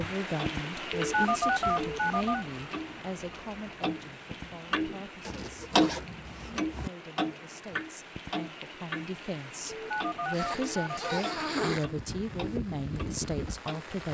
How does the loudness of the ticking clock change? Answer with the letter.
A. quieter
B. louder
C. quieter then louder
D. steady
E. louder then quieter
E.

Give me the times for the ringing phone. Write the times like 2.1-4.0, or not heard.
0.9-2.5, 9.9-11.3.